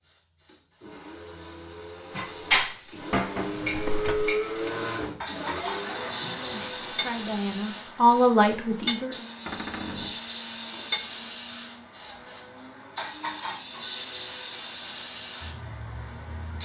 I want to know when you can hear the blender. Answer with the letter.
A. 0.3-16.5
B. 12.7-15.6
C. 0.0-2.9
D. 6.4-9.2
A.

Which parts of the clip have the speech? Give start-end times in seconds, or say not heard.
6.4-9.2.